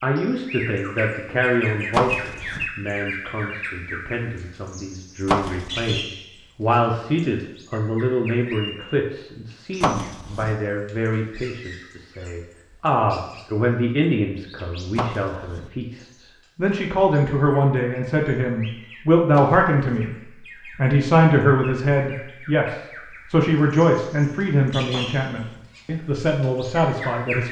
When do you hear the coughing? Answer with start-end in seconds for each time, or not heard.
not heard.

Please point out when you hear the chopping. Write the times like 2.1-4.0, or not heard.
1.9-2.6, 5.2-6.0, 9.8-10.6, 14.9-15.7, 19.3-20.1, 24.9-25.6.